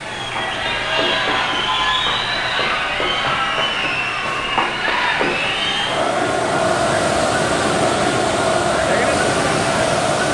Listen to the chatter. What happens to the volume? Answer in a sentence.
The loudness of the chatter stays about the same.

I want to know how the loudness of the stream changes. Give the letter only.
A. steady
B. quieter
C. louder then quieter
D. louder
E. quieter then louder
D.